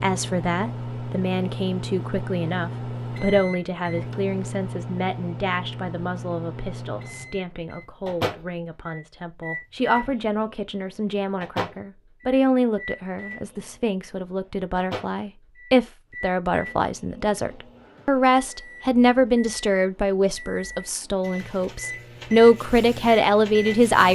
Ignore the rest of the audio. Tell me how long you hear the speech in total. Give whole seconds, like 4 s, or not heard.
24 s.